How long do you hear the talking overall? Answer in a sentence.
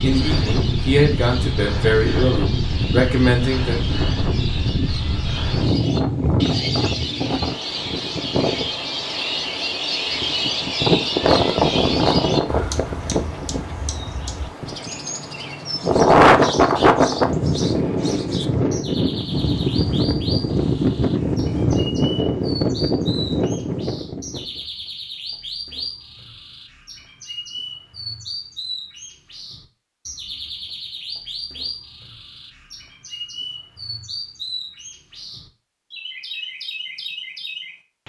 The talking can be heard for 4 seconds in total.